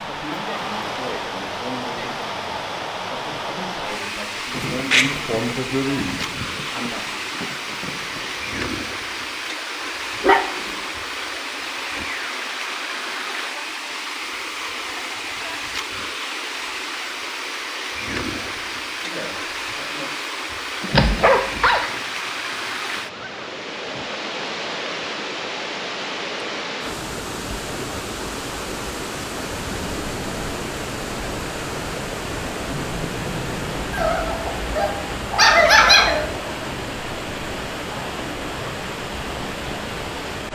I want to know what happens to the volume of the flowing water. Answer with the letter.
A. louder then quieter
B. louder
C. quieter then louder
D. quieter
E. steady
E.